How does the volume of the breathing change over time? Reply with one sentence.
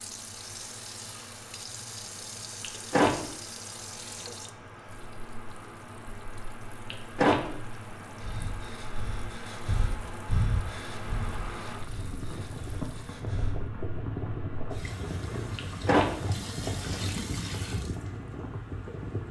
The loudness of the breathing goes up, then down.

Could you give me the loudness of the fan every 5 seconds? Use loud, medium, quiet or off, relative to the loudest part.
medium, medium, loud, loud.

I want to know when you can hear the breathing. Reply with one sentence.
You can hear the breathing from 8.2 to 13.7 s.